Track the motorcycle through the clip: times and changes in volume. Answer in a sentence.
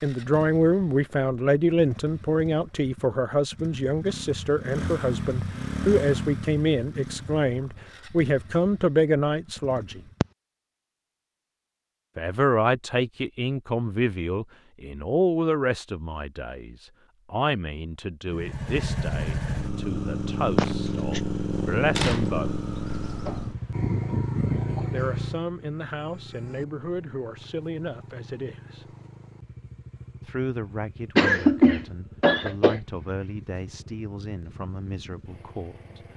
You can hear the motorcycle from 0.0 to 10.3 s, getting louder then quieter; and from 18.2 to 36.1 s, getting quieter.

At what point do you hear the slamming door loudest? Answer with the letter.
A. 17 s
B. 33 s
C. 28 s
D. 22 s
D.